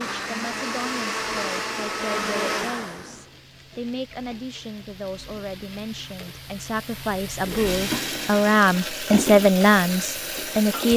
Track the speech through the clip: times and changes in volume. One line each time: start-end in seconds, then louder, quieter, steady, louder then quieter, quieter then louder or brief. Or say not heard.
0.0-10.9 louder.